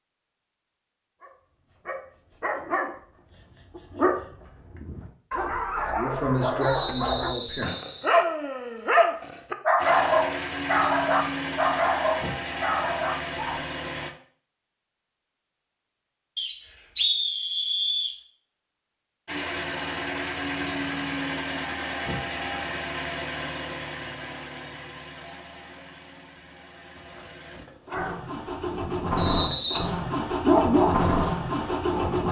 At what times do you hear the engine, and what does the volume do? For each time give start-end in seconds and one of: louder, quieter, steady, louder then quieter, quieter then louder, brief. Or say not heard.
9.8-14.1 steady
19.2-32.2 quieter then louder.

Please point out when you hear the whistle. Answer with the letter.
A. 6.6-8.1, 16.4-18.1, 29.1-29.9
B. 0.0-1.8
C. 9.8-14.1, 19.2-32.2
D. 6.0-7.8
A.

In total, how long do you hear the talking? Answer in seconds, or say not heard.
2 s.